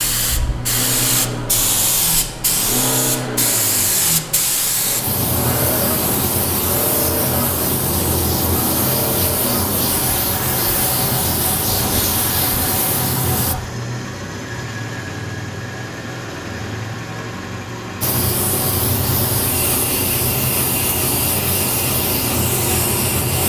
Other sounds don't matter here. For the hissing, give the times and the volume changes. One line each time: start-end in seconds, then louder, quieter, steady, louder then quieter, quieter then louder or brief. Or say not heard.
0.0-13.6 steady
18.0-23.4 steady.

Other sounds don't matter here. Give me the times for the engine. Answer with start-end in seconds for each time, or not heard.
0.2-23.4.